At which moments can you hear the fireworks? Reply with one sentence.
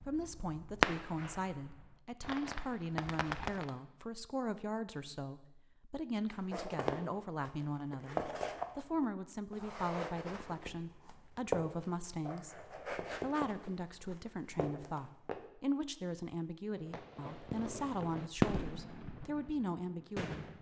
The fireworks can be heard from 0.0 to 3.7 s and from 16.8 to 20.5 s.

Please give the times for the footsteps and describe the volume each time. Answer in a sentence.
The footsteps can be heard from 6.3 to 15.4 s, getting quieter.